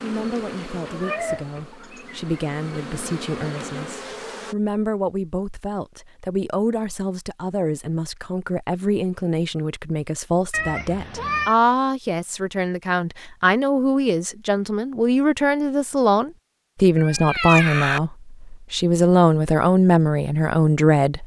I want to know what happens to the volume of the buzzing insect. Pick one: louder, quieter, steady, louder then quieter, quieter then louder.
quieter then louder.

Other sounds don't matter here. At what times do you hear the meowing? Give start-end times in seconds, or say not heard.
0.8-2.1, 10.5-11.6, 16.9-18.0.